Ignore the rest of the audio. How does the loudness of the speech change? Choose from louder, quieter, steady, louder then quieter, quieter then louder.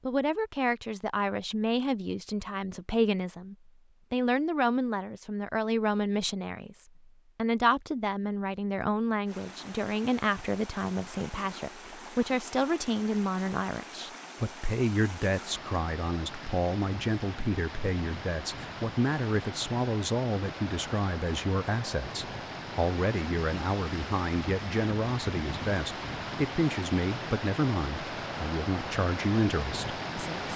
steady.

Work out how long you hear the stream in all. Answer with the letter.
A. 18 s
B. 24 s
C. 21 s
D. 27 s
C.